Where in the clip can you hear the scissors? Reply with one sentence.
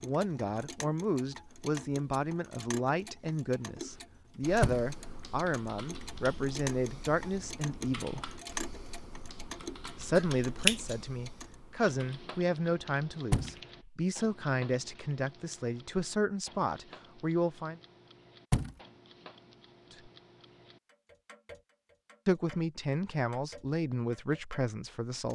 The scissors can be heard from 10.2 to 11.0 s.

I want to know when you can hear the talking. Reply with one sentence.
You can hear the talking from 0.0 to 8.3 s, from 9.9 to 17.8 s and from 22.2 to 25.3 s.